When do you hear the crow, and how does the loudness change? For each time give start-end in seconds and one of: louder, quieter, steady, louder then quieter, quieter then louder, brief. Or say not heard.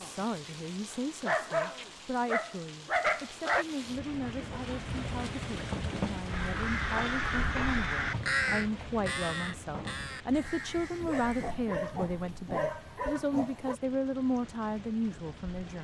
6.2-11.6 quieter.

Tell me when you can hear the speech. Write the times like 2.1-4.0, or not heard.
0.0-15.7.